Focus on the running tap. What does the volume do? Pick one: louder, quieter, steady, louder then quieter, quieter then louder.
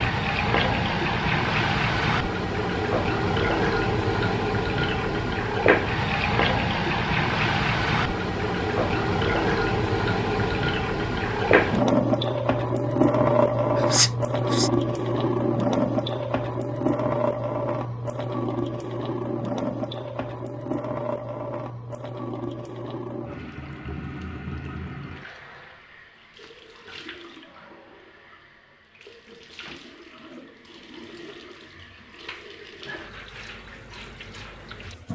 quieter.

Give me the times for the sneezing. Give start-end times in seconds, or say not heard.
13.8-14.7.